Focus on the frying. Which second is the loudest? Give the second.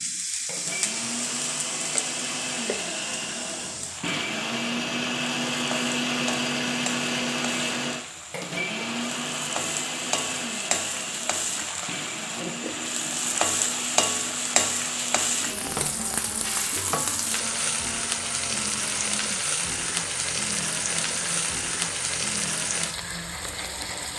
14 s.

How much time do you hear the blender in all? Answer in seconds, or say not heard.
24 s.